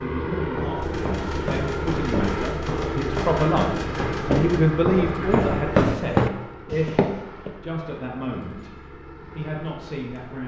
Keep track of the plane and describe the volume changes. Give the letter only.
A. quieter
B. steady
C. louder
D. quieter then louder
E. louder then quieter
A.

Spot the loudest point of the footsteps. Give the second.
6 s.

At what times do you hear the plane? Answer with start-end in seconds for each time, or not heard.
0.0-10.4.